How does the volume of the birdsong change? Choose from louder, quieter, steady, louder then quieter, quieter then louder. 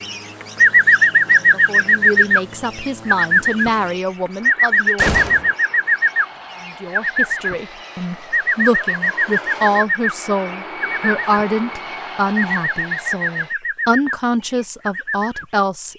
quieter.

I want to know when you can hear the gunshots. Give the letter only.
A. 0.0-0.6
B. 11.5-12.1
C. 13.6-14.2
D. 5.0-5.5
D.